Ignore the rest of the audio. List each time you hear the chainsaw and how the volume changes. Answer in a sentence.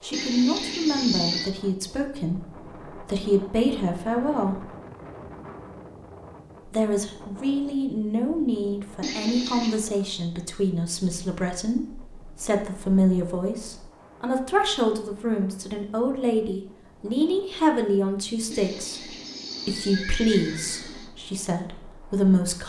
The chainsaw can't be heard in this clip.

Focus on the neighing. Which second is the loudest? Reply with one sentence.
The loudest moment of the neighing is at 1 second.